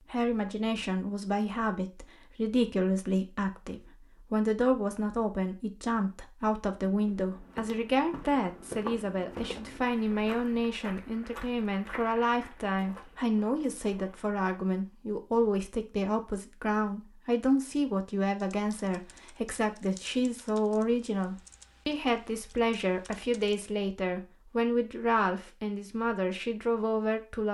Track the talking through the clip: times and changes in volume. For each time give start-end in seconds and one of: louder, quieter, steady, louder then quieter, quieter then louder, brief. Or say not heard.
0.1-27.4 steady.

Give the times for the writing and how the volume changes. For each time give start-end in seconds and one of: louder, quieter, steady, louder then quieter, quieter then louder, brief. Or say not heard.
not heard.